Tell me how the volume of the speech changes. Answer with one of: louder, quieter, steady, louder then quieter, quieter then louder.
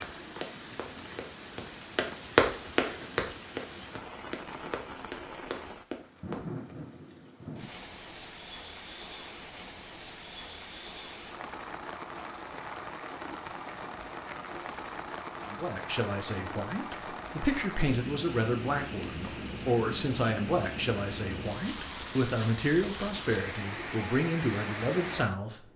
steady.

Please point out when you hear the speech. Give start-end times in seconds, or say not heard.
15.5-25.7.